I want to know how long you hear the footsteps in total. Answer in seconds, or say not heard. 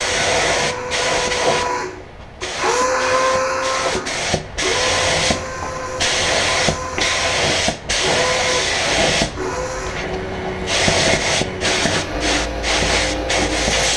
not heard.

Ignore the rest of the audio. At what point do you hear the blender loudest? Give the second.
3 s.